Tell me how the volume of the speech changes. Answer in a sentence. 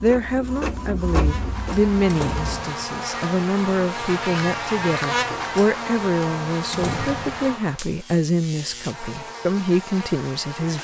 The loudness of the speech stays about the same.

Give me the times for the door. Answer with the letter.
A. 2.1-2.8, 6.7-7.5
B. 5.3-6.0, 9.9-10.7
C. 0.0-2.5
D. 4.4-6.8
A.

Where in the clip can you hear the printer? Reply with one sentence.
You can hear the printer from 0.0 to 2.5 s.